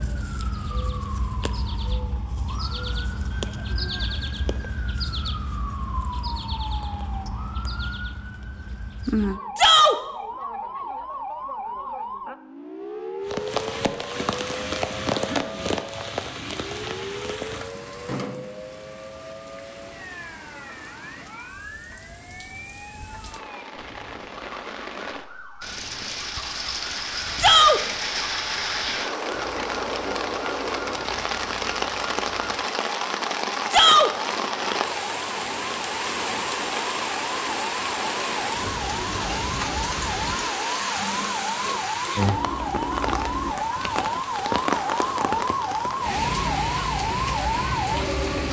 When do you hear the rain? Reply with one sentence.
The rain can be heard from 13.2 to 48.4 s.